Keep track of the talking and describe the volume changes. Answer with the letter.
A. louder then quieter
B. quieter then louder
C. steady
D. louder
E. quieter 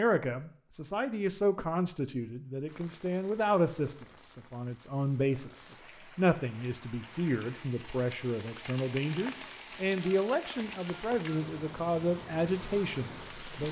C.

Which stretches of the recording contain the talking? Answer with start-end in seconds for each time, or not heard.
0.0-13.6.